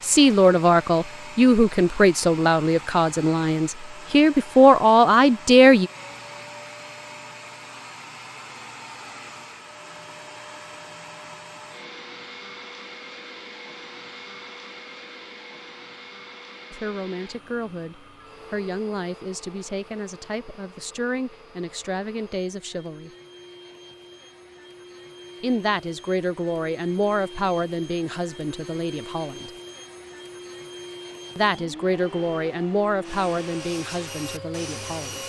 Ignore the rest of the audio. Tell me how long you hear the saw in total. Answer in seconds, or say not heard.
2 s.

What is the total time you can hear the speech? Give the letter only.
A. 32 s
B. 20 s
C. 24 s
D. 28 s
B.